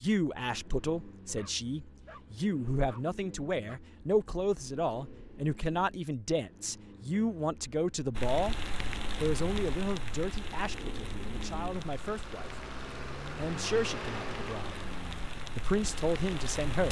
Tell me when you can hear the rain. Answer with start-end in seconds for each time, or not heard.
8.2-16.8.